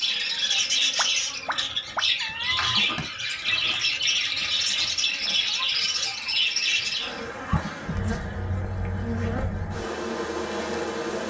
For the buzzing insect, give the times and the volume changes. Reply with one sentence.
The buzzing insect can be heard from 0.0 to 11.2 s, getting louder.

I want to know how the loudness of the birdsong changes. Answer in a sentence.
The volume of the birdsong stays about the same.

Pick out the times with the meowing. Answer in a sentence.
The meowing can be heard from 0.9 to 2.7 s.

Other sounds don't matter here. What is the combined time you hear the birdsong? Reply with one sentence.
You can hear the birdsong for 7 seconds altogether.